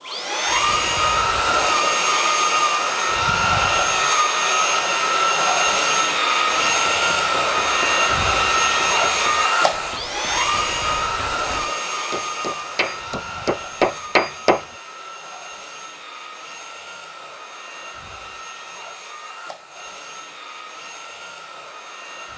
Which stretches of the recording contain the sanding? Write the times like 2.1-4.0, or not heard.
not heard.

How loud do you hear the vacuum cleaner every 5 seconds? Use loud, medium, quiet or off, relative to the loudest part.
loud, loud, medium, quiet, quiet.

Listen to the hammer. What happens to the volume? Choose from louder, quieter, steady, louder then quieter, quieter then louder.
louder.